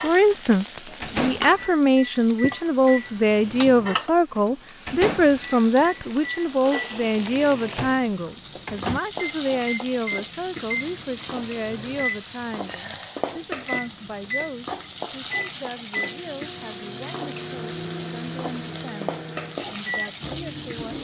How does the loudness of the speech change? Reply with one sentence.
The loudness of the speech goes down.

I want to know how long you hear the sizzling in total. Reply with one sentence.
You can hear the sizzling for 21 seconds altogether.